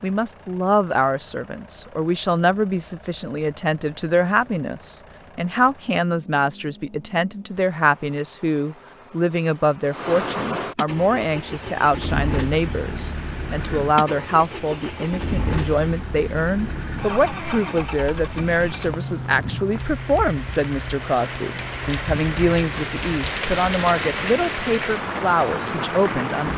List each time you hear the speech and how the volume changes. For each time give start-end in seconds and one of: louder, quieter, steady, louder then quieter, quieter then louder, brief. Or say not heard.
0.0-26.5 steady.